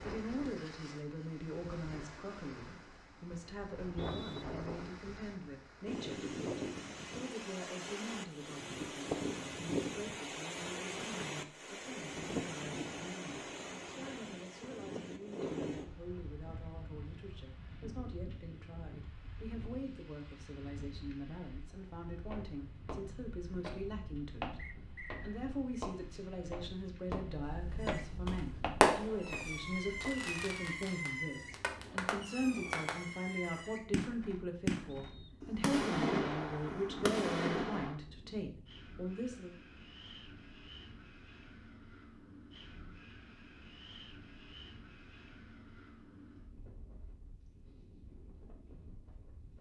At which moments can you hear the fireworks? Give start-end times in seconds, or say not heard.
27.8-38.0.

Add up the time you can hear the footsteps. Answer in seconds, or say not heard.
8 s.